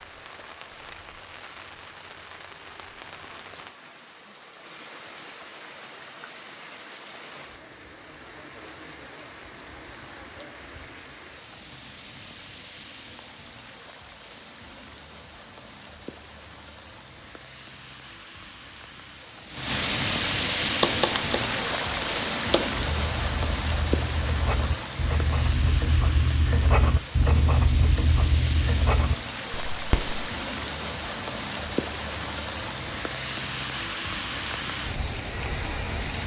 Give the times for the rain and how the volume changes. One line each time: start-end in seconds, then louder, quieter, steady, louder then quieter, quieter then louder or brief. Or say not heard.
0.0-36.2 louder.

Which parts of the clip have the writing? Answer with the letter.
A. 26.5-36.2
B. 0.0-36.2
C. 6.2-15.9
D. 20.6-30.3
D.